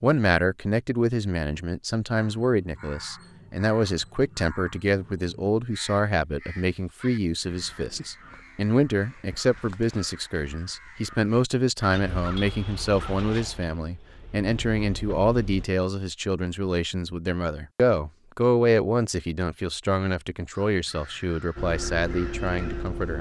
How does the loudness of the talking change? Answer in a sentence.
The volume of the talking stays about the same.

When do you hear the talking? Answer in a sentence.
You can hear the talking from 0.0 to 23.1 s.